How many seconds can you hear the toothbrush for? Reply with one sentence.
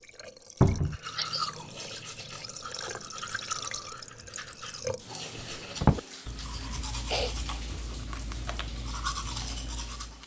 The toothbrush can be heard for 9 seconds in total.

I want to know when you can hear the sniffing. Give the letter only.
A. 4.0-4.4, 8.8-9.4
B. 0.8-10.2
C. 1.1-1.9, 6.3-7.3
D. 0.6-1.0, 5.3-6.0
C.